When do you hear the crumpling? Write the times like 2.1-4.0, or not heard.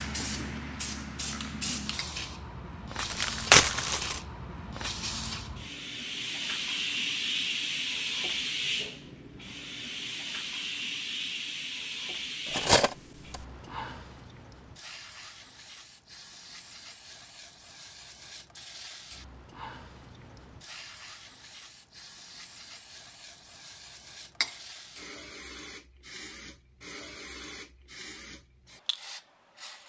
3.0-4.2.